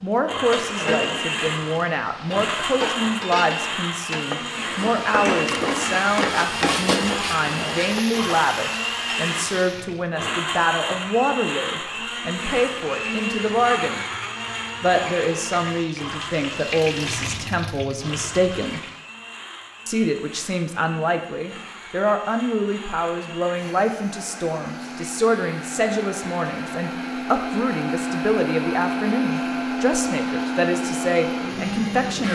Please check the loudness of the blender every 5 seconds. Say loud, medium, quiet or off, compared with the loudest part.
loud, loud, loud, medium, quiet, loud, loud.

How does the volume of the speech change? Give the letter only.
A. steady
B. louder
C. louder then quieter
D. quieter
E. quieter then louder
A.